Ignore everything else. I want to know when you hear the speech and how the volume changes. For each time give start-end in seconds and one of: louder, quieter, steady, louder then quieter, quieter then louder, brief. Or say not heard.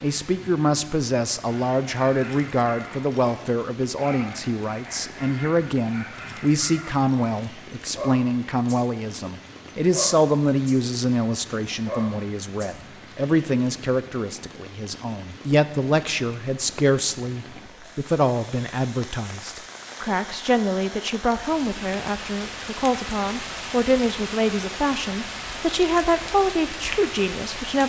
0.0-27.8 steady.